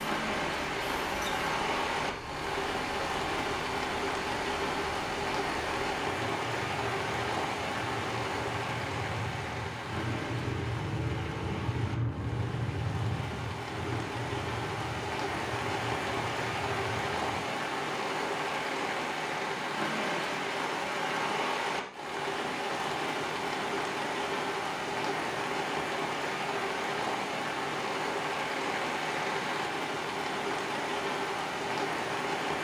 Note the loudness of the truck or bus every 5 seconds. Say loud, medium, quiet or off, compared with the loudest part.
medium, medium, loud, medium, off, off, off.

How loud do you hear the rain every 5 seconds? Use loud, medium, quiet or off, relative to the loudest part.
loud, loud, medium, loud, loud, loud, loud.